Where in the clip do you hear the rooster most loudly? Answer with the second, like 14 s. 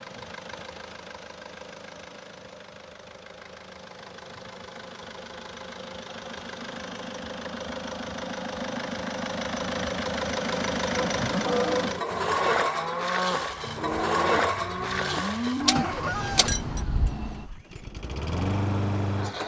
16 s.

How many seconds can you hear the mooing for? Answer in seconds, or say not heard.
6 s.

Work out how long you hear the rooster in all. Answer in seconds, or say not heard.
2 s.